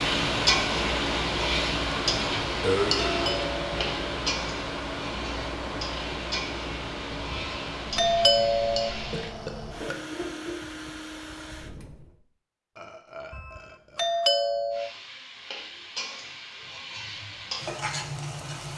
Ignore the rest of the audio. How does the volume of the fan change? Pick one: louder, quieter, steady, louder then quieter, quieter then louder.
quieter.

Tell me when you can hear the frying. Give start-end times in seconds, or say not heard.
0.0-9.3, 14.7-18.7.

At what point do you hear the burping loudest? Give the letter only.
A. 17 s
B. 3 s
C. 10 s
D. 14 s
B.